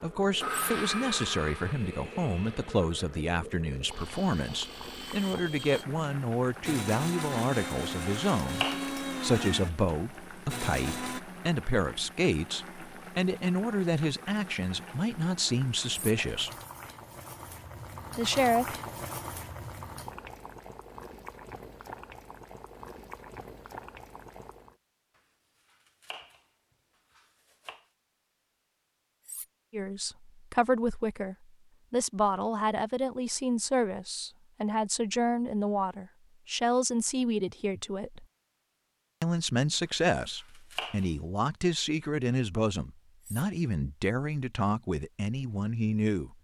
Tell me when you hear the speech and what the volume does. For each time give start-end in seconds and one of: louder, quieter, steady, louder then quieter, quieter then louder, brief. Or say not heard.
0.0-16.5 steady
18.1-18.8 brief
29.7-38.2 steady
39.2-46.3 steady.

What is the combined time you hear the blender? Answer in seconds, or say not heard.
11 s.